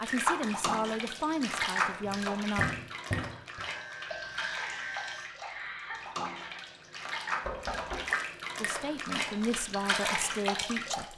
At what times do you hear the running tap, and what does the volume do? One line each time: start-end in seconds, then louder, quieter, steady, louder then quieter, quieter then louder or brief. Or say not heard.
0.0-11.1 quieter then louder.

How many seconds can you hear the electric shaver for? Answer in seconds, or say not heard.
2 s.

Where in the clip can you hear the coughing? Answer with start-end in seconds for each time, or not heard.
4.1-6.6.